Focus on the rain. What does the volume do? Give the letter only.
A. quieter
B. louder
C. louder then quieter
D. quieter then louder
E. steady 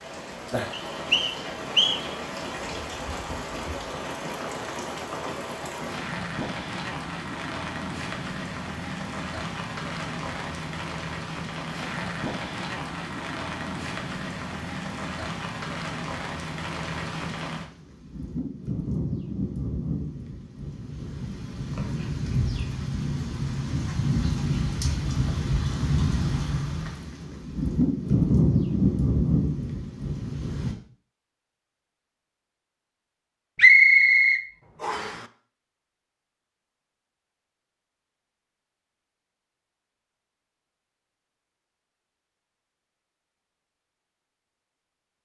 B.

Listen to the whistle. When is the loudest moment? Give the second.
34 s.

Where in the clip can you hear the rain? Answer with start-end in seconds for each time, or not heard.
0.0-30.8.